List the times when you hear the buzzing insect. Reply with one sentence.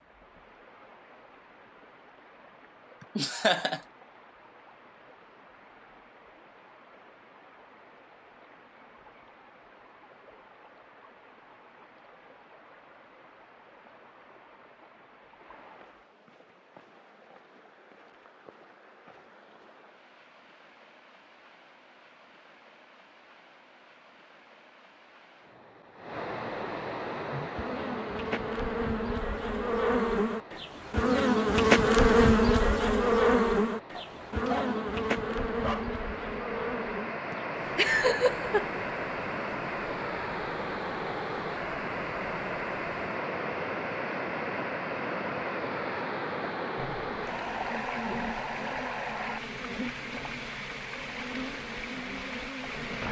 The buzzing insect can be heard from 27.1 to 53.0 s.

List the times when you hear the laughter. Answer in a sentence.
You can hear the laughter from 3.0 to 3.8 s and from 37.3 to 38.7 s.